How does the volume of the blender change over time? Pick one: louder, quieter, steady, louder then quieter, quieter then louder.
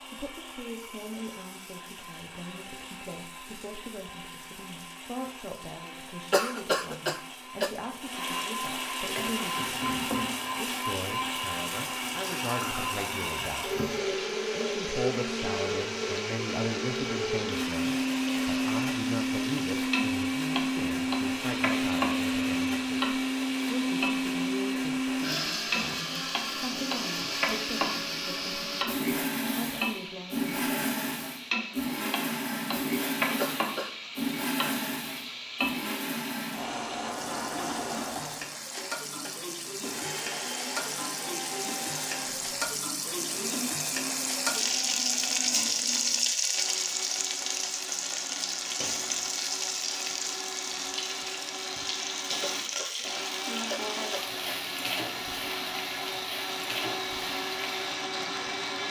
louder then quieter.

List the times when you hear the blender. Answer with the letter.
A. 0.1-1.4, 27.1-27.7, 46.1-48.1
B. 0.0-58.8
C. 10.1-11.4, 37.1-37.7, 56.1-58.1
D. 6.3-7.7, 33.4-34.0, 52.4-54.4
B.